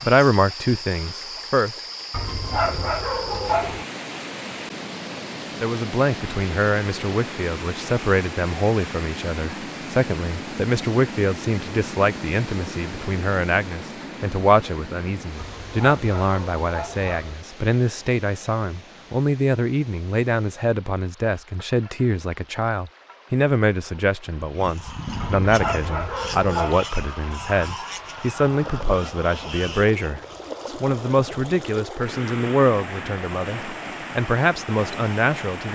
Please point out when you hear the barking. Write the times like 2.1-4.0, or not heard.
2.1-3.9, 15.3-17.4, 25.2-26.9.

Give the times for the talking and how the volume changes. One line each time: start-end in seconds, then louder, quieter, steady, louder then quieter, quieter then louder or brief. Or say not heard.
0.0-1.7 brief
5.6-35.7 steady.